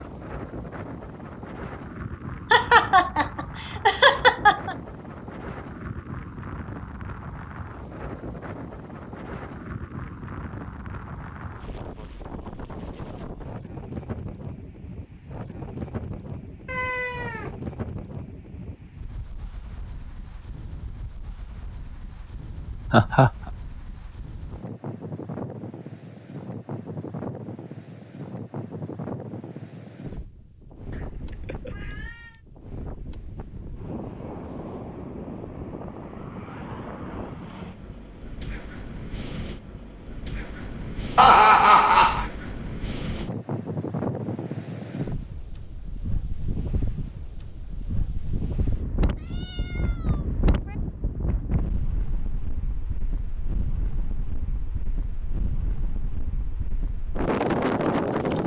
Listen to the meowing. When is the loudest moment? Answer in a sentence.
The loudest moment of the meowing is at 17 seconds.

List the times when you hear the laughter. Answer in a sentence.
The laughter can be heard from 2.5 to 4.8 s, from 22.9 to 23.3 s and from 41.1 to 42.2 s.